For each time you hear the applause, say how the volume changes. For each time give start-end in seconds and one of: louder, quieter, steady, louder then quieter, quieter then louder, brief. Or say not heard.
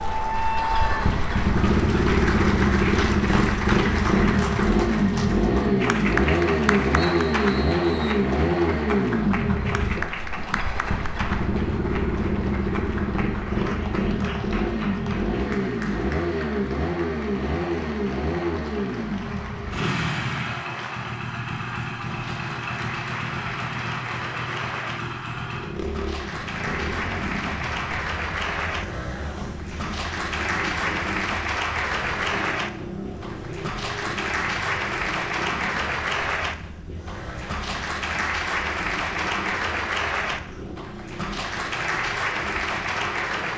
0.0-43.5 quieter then louder.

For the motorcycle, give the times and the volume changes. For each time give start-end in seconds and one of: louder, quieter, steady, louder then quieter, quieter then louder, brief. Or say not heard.
0.0-43.5 quieter.